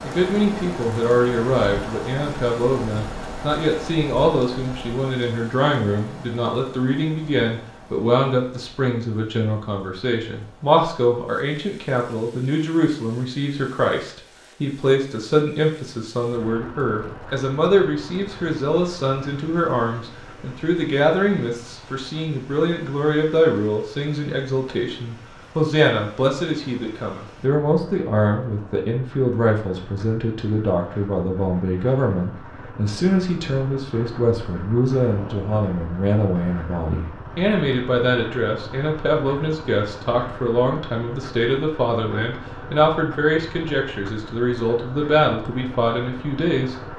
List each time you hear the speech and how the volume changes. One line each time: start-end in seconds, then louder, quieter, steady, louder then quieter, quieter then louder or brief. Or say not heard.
0.0-46.8 steady.